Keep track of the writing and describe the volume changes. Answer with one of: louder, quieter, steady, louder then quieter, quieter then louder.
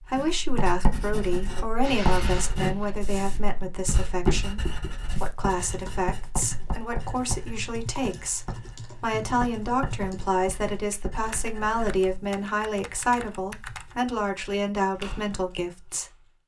quieter.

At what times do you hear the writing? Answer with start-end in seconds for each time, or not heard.
0.1-12.1.